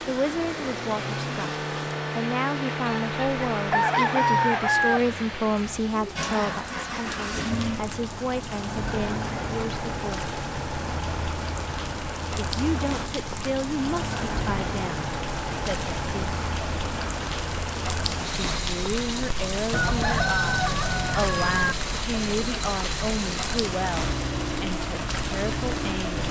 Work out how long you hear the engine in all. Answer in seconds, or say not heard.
26 s.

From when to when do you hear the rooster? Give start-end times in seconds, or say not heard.
2.9-5.0, 19.7-21.8.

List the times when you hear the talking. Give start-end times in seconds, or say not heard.
0.1-10.3, 12.3-16.4, 18.5-26.2.